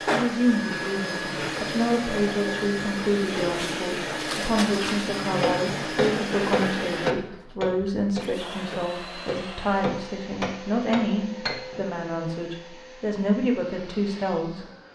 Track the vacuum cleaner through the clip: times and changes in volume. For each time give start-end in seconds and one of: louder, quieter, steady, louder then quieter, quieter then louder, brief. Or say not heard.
0.0-14.9 quieter.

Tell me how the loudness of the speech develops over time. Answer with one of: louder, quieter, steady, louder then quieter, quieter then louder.
steady.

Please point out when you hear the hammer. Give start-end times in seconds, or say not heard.
5.4-11.8.